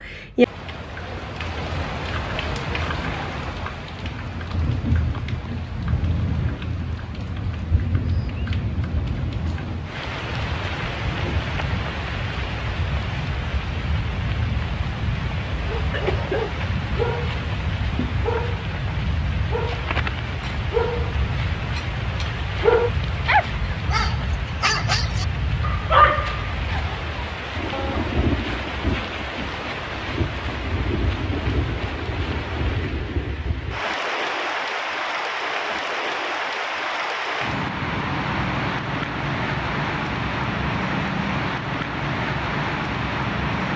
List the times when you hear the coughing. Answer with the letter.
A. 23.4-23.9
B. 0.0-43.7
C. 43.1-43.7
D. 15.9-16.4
D.